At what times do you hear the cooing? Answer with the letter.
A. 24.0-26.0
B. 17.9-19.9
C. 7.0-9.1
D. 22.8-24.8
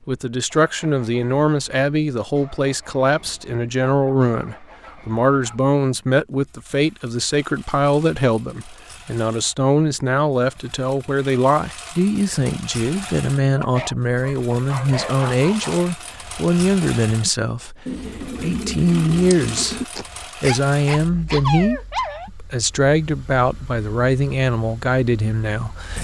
B.